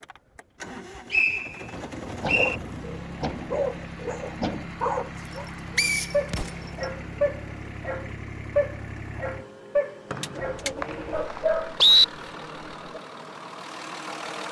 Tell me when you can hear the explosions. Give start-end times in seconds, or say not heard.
6.2-6.7.